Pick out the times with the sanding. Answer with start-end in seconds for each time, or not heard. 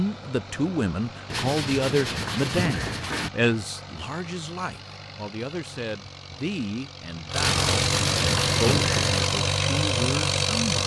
1.3-3.3, 7.4-9.3.